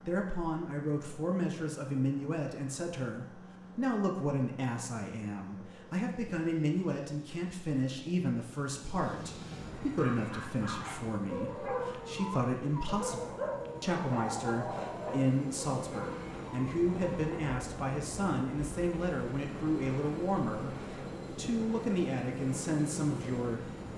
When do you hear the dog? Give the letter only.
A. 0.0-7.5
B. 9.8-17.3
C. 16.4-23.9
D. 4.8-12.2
B.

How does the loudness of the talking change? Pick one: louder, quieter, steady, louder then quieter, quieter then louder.
steady.